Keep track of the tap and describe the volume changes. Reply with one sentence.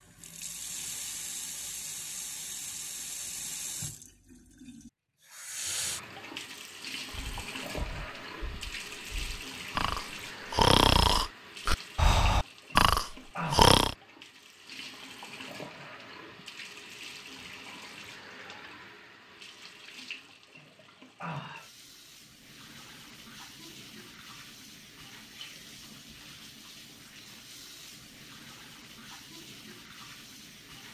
The loudness of the tap goes down.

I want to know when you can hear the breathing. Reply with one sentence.
The breathing can be heard from 7.1 to 13.9 s.